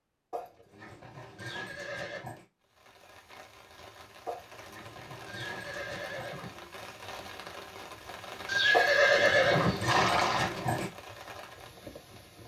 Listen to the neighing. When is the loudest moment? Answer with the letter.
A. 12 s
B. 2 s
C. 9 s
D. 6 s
C.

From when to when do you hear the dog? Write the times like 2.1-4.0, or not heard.
0.3-2.5, 4.2-6.3, 8.7-10.9.